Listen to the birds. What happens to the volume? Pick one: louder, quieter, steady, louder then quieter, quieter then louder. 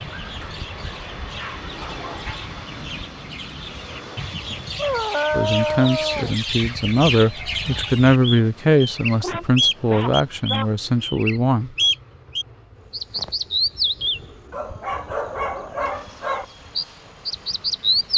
louder then quieter.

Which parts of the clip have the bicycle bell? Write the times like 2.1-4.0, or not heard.
not heard.